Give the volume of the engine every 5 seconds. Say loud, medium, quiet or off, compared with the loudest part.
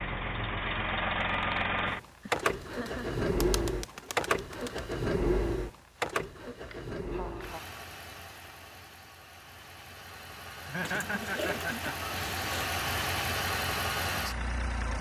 loud, medium, loud.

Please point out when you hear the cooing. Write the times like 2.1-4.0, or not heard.
2.7-5.0, 10.8-12.8.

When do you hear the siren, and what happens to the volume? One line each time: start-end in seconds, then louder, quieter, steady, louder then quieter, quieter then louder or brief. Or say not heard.
not heard.